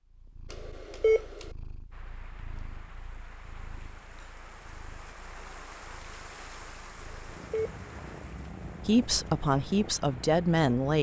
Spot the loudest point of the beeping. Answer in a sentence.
The loudest moment of the beeping is at 1 second.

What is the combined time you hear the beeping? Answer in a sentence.
The beeping can be heard for 2 seconds in total.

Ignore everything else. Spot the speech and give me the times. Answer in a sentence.
You can hear the speech from 8.8 to 10.9 s.